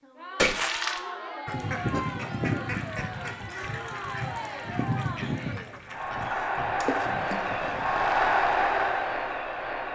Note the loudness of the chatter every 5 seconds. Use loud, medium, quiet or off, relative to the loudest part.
medium, loud.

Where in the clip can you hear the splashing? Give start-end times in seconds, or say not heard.
0.3-1.0, 6.8-7.5.